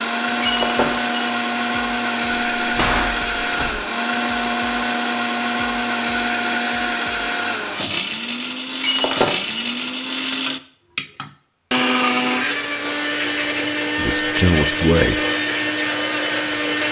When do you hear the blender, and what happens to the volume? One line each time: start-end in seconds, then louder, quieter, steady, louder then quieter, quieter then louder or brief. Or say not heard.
0.0-16.8 steady.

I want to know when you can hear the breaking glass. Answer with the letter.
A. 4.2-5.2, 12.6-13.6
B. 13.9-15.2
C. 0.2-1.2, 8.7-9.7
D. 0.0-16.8
C.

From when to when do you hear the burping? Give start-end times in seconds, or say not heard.
not heard.